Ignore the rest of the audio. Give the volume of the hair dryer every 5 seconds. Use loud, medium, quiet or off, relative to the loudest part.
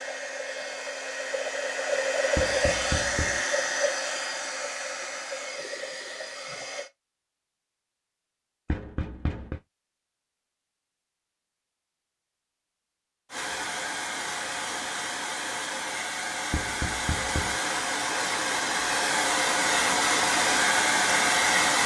medium, quiet, medium, medium, loud.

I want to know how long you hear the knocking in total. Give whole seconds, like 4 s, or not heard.
3 s.